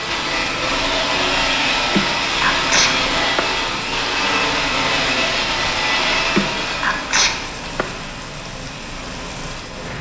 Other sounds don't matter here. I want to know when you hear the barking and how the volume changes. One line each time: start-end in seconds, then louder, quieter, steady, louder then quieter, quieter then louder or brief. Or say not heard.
not heard.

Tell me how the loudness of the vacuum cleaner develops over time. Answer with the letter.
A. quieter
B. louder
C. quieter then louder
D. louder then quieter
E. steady
A.